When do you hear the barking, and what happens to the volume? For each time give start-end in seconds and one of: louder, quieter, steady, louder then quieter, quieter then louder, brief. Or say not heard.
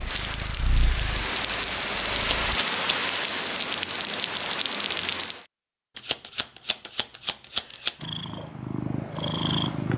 not heard.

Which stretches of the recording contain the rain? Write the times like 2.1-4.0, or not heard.
0.0-5.5.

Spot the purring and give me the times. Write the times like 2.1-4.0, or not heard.
0.0-2.6, 8.0-9.9.